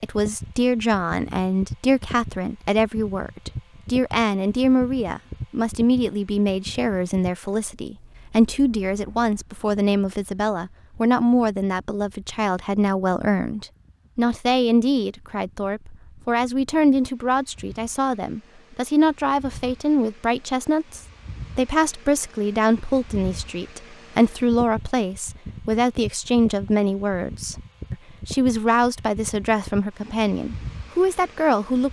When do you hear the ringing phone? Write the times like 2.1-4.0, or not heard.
not heard.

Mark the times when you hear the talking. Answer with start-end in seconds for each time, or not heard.
0.0-31.8.